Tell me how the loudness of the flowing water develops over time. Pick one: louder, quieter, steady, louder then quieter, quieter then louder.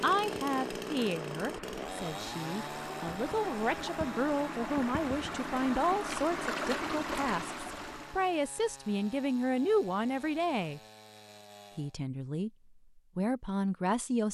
louder.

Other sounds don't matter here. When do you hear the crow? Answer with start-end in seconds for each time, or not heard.
not heard.